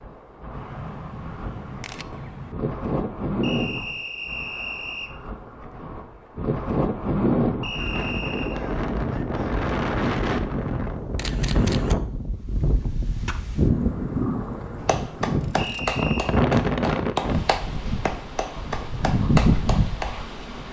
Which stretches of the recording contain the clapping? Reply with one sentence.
The clapping can be heard from 14.8 to 20.1 s.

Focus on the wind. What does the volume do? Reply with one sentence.
The volume of the wind goes up.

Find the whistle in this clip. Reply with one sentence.
You can hear the whistle from 3.4 to 5.1 s, from 7.6 to 8.6 s and from 15.6 to 16.4 s.